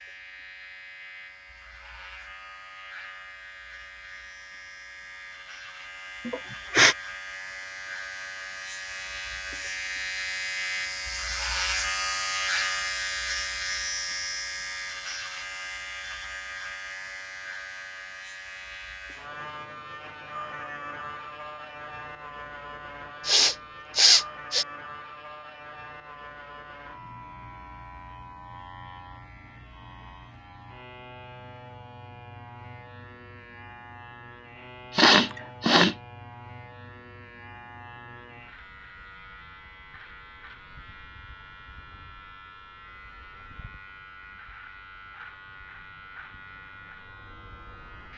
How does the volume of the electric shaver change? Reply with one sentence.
The volume of the electric shaver goes up, then down.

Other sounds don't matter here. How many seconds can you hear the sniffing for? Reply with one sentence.
You can hear the sniffing for 3 seconds altogether.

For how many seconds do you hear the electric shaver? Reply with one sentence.
You can hear the electric shaver for 48 seconds altogether.